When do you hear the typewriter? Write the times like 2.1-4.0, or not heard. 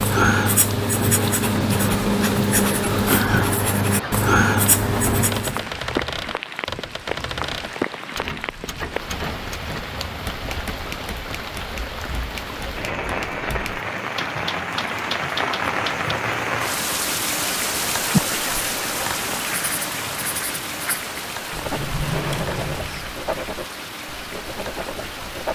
4.7-16.1.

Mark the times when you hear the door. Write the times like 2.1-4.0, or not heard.
4.8-5.7, 21.5-23.1.